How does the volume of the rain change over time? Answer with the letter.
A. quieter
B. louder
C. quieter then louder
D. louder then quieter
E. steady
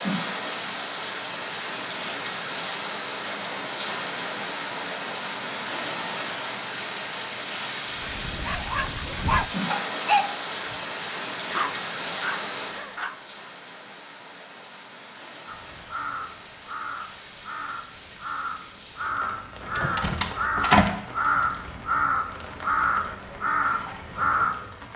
A.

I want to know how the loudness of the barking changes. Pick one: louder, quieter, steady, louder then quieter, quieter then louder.
louder then quieter.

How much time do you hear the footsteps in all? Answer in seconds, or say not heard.
not heard.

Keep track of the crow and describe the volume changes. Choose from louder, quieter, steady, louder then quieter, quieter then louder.
louder.